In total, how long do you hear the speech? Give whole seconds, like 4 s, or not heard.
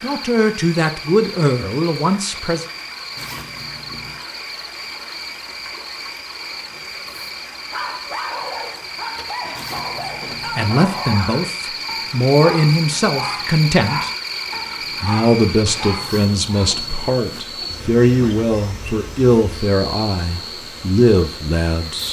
13 s.